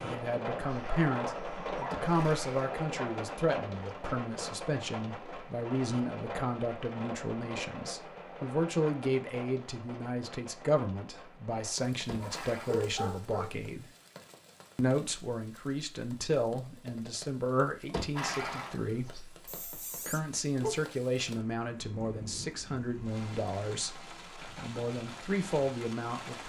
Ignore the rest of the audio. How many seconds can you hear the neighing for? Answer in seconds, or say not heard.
3 s.